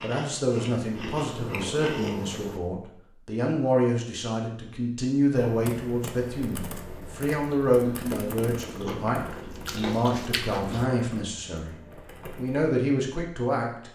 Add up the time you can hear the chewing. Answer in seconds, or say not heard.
6 s.